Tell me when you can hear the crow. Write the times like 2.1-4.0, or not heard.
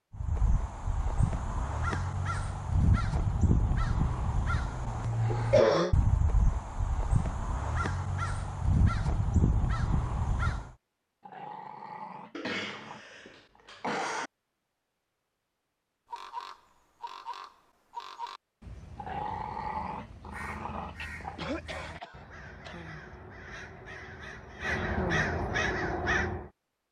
0.1-10.7, 16.1-26.5.